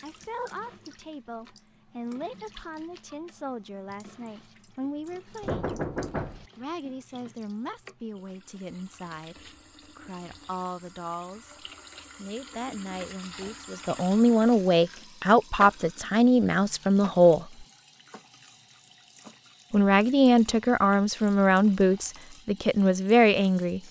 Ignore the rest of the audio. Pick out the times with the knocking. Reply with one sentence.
The knocking can be heard from 5.4 to 6.5 s.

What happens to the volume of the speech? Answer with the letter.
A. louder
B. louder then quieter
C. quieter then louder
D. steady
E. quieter
A.